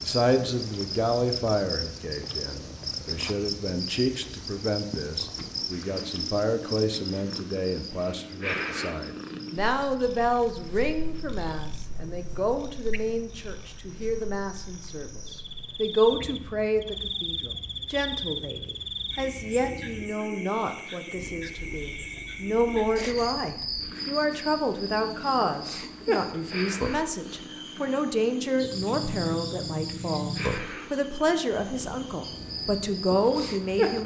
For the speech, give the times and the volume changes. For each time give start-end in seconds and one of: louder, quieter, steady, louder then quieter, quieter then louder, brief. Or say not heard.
0.0-34.0 steady.